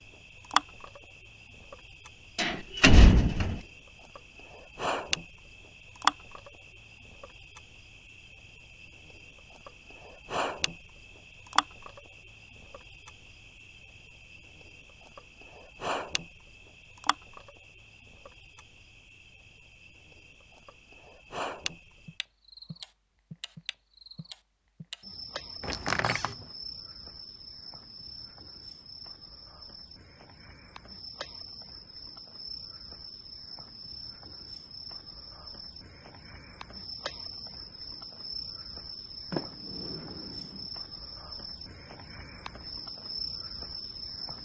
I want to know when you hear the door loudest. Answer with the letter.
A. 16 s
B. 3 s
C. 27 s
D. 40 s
B.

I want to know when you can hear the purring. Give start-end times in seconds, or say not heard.
not heard.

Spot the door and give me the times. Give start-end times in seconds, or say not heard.
2.4-3.6, 25.6-26.4, 39.3-40.6.